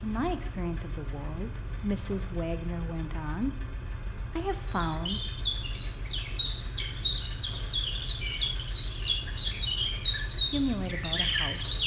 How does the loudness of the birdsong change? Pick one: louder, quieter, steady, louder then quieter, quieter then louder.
steady.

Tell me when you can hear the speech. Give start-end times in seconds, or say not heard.
0.0-5.3, 10.5-11.8.